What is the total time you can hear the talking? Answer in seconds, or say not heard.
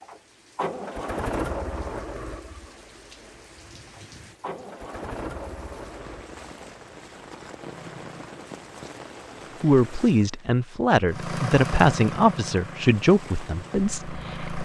5 s.